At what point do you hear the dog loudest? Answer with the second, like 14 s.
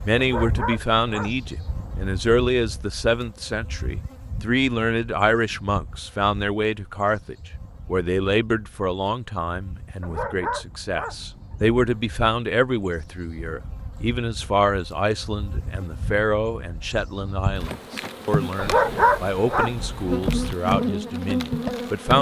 19 s.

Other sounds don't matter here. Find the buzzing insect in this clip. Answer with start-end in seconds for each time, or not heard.
0.0-22.1.